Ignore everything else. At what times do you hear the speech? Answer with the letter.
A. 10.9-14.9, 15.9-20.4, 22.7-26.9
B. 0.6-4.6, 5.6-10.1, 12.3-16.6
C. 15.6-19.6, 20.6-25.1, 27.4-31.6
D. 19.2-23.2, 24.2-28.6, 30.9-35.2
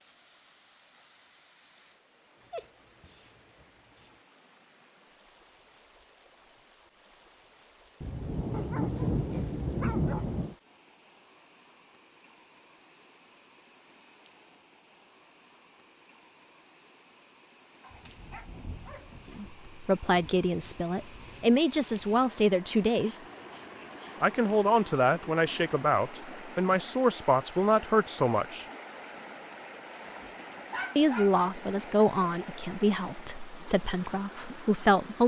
D.